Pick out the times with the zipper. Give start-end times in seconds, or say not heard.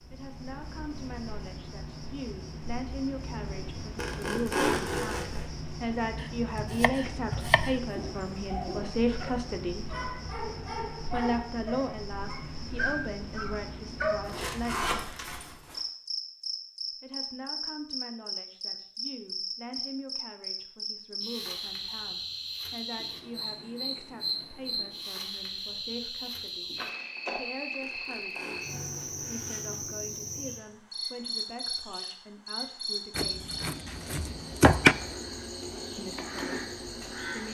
4.0-5.5, 14.2-15.8, 27.8-29.8.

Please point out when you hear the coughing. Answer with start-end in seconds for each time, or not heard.
not heard.